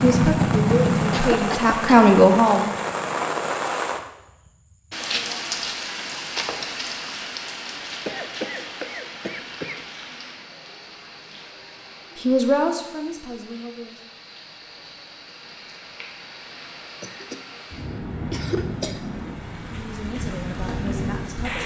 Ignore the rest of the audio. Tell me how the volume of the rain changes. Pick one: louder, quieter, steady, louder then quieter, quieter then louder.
quieter then louder.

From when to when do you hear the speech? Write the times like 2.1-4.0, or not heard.
0.0-2.7, 12.2-13.9, 19.6-21.6.